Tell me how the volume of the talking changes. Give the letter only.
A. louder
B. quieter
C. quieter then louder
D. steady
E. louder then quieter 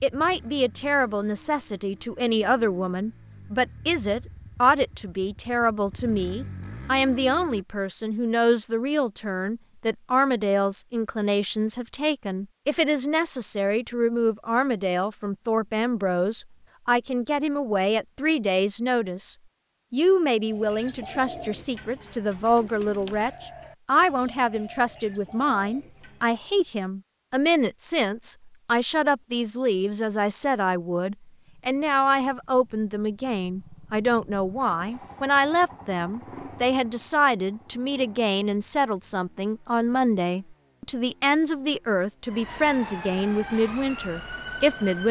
D.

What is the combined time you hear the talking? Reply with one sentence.
The talking can be heard for 45 seconds in total.